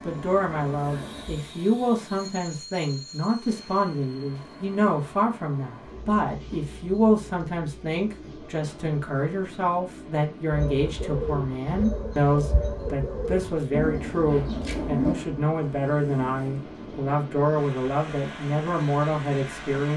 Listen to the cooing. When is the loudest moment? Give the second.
15 s.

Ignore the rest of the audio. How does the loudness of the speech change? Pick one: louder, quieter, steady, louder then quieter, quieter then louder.
steady.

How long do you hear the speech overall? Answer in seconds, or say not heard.
20 s.